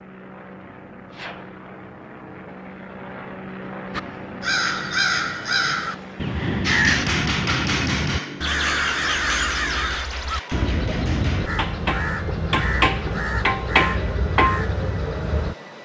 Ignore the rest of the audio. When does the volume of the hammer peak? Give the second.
14 s.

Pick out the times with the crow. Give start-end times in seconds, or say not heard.
3.9-15.6.